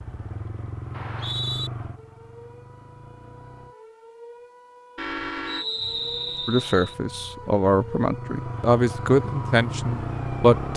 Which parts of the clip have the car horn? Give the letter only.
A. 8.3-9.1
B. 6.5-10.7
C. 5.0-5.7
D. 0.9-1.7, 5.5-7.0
C.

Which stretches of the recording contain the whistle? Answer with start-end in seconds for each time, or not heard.
0.9-1.7, 5.5-7.0.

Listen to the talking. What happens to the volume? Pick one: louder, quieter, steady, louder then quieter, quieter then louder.
louder then quieter.